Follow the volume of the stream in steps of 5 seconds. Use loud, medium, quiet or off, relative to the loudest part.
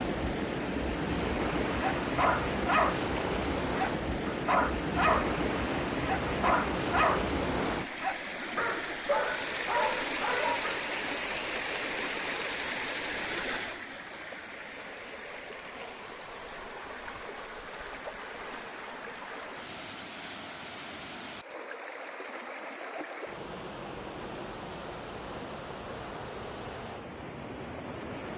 loud, loud, loud, medium, medium, medium.